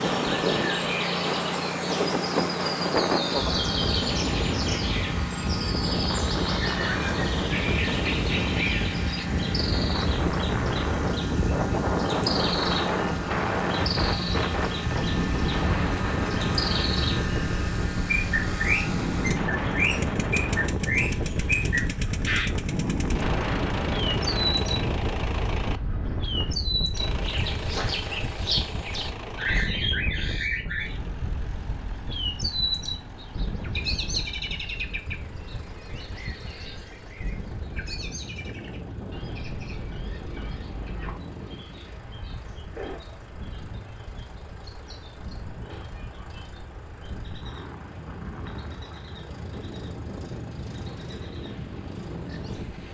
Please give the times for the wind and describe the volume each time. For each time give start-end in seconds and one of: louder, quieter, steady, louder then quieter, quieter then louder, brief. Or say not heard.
0.0-52.9 quieter.